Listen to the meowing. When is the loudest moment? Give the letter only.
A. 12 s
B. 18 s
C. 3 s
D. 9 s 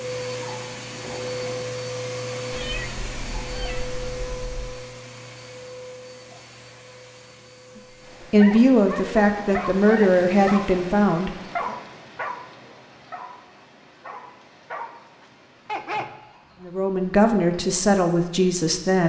C.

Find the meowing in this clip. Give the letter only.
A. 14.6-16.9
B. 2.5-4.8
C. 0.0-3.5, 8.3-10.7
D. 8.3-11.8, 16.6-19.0
B.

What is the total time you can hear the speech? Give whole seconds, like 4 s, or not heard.
6 s.